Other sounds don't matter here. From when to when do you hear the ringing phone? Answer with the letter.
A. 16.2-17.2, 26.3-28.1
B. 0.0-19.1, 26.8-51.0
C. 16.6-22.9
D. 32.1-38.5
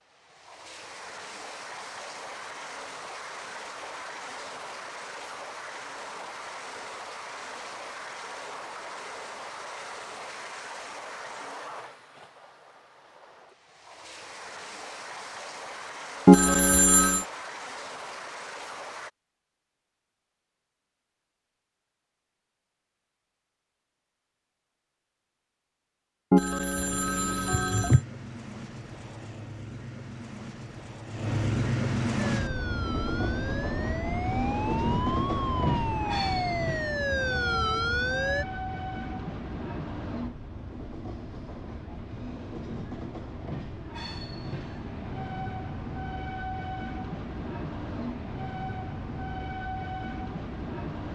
A.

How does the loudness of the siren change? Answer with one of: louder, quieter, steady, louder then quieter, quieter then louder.
louder.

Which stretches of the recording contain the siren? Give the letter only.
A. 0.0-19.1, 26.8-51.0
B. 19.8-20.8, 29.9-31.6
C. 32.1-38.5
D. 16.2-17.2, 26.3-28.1
C.